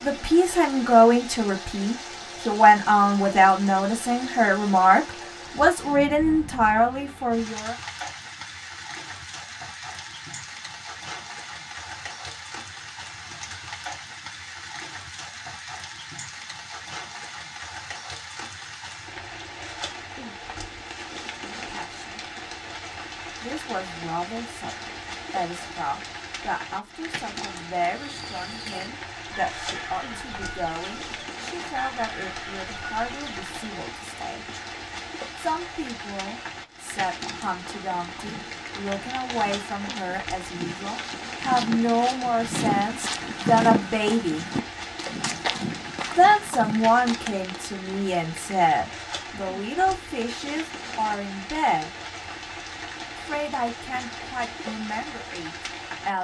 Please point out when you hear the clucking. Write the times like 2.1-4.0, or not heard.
27.9-33.5.